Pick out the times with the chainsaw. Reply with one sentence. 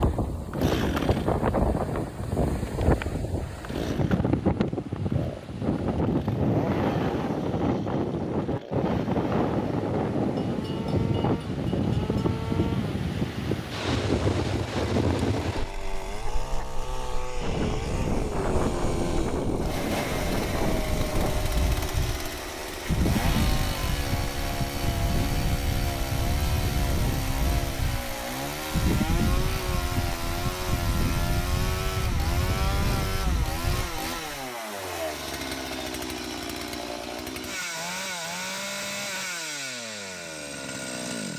You can hear the chainsaw from 0.0 to 41.3 s.